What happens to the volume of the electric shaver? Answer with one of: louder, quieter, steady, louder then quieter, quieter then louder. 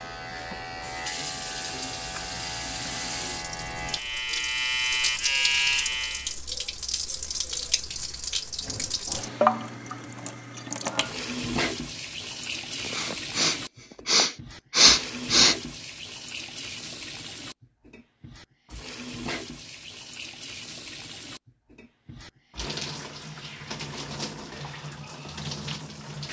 louder.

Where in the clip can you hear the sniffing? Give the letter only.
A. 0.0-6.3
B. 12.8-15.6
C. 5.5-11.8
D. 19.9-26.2
B.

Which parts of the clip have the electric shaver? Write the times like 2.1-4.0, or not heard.
0.0-6.3.